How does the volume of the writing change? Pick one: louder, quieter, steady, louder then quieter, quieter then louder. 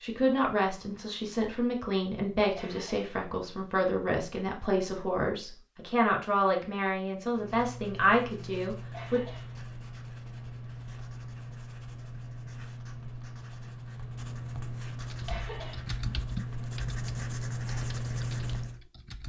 louder.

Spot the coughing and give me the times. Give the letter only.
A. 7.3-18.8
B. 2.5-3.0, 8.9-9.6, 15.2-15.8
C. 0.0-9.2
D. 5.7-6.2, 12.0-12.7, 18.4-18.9
B.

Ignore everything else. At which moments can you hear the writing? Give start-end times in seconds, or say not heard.
7.3-18.8.